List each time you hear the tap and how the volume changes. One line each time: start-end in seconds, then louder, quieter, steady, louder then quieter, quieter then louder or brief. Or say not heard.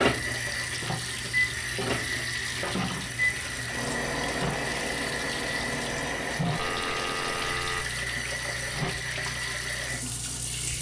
0.0-10.7 steady.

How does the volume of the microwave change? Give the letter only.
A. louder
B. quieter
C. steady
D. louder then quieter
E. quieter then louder
B.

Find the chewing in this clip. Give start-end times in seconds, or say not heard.
not heard.